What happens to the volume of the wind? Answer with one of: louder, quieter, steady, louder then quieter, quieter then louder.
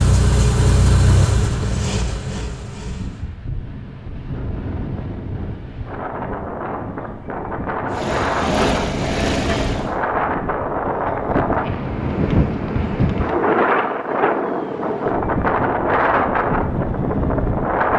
louder.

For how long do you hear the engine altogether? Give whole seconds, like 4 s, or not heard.
5 s.